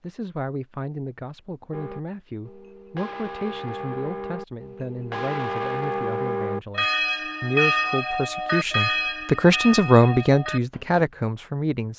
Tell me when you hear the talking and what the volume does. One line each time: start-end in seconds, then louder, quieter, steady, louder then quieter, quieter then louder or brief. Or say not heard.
0.0-11.9 louder.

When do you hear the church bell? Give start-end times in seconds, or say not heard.
1.7-11.0.